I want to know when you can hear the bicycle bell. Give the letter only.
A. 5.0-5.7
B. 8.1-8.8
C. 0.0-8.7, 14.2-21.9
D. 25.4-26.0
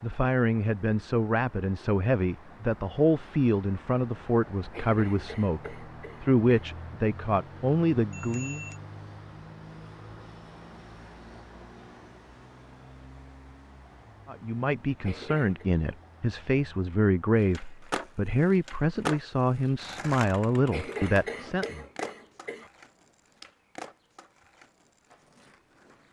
B.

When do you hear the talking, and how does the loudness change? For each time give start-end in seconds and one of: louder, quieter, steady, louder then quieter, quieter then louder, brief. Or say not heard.
0.0-8.7 steady
14.2-21.9 steady.